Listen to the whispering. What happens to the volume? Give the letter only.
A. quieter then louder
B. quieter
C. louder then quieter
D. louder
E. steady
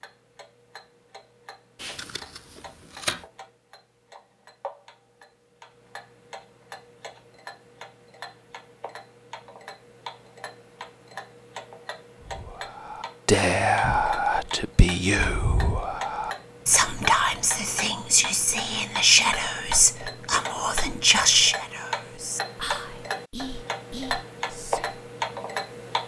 B.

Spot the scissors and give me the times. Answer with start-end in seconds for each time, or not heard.
1.8-3.2.